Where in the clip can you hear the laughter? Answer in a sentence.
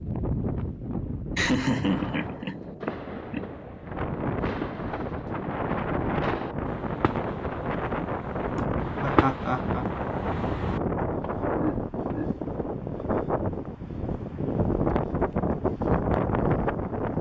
You can hear the laughter from 1.4 to 3.5 s, from 9.0 to 9.8 s and from 11.6 to 12.4 s.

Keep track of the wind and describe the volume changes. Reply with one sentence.
The volume of the wind goes up.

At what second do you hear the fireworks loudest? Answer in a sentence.
The loudest moment of the fireworks is at 9 seconds.